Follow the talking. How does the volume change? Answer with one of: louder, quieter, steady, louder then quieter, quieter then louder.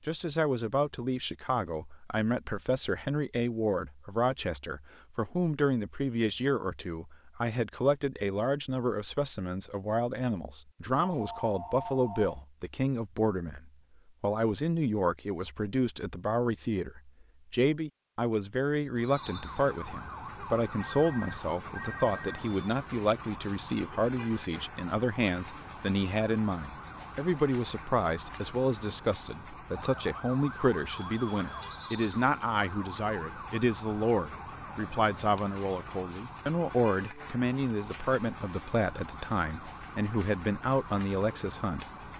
steady.